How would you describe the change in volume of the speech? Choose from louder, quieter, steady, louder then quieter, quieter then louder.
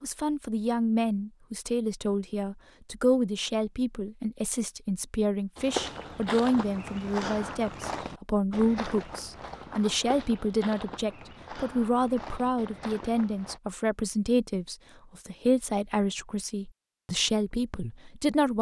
steady.